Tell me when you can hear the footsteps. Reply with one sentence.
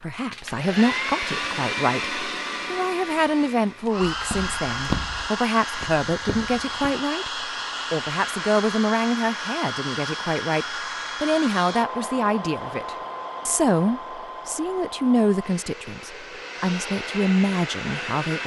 You can hear the footsteps from 4.1 to 7.0 s.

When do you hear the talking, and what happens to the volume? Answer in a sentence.
The talking can be heard from 0.0 to 18.4 s, at a steady volume.